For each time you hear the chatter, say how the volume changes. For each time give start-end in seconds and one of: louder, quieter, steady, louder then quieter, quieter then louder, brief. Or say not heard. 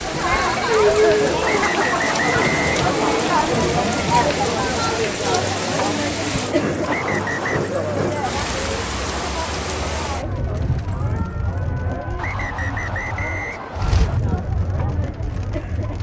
0.0-15.9 quieter.